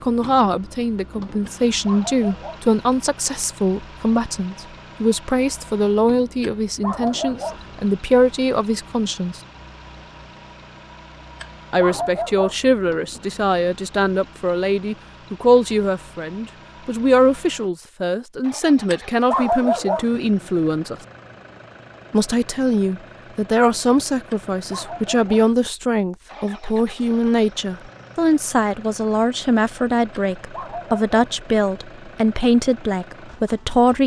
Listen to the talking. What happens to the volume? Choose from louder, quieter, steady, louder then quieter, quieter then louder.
steady.